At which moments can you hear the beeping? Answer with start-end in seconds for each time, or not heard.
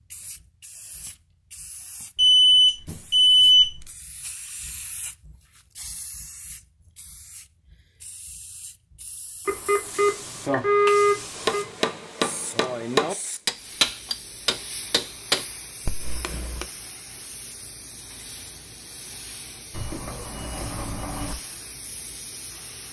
2.1-3.9, 9.4-11.7, 19.7-21.4.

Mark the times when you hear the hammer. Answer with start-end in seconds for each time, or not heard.
11.3-16.6.